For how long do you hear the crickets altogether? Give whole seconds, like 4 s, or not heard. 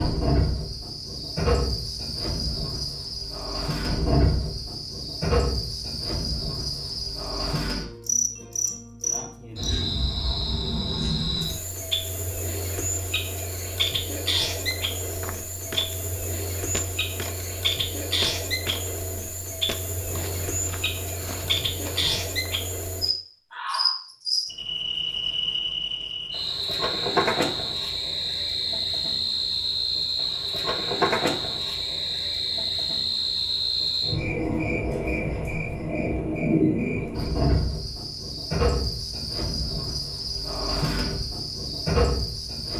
43 s.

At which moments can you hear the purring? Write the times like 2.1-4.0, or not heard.
not heard.